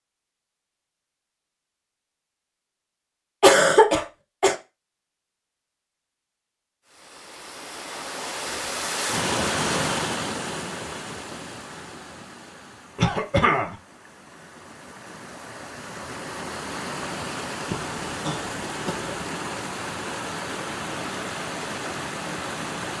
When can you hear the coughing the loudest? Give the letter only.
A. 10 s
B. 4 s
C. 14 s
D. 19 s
B.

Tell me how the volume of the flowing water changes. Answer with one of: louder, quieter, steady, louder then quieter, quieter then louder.
quieter then louder.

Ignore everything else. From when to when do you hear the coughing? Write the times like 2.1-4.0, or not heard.
3.4-4.5, 12.9-13.8, 17.7-19.2.